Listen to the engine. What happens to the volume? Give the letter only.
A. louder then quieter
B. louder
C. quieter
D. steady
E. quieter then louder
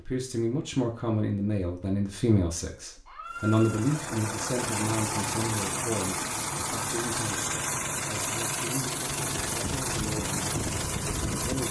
D.